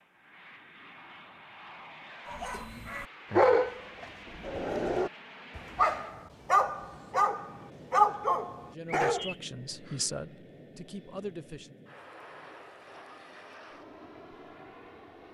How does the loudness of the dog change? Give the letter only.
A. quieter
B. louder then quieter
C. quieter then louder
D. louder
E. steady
C.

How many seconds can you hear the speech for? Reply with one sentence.
The speech can be heard for 3 seconds in total.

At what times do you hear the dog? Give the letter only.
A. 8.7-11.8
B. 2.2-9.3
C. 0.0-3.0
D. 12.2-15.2
B.